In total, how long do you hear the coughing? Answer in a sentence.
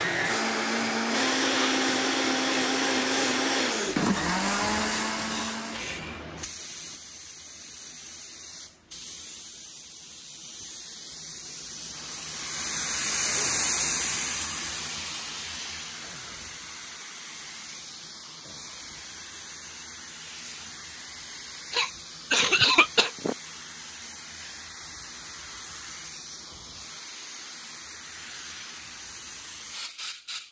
The coughing can be heard for 2 seconds in total.